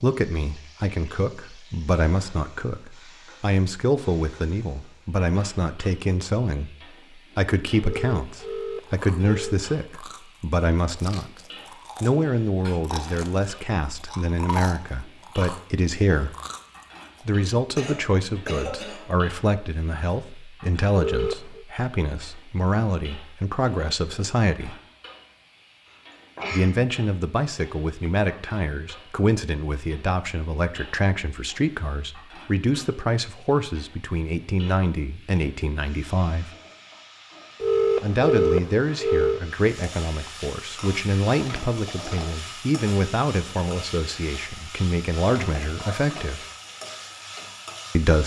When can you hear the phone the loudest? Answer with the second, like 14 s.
38 s.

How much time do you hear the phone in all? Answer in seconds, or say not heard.
4 s.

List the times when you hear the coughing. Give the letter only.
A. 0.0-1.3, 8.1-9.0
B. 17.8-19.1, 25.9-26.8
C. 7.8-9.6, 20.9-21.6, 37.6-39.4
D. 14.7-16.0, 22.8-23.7
B.